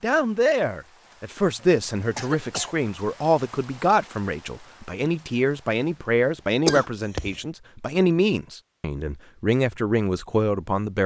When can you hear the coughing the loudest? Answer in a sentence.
The loudest moment of the coughing is at 7 seconds.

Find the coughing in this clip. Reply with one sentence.
The coughing can be heard from 1.6 to 2.8 s and from 6.7 to 7.3 s.